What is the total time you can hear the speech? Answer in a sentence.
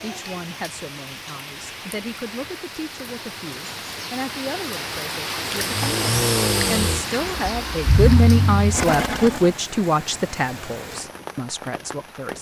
The speech can be heard for 12 seconds in total.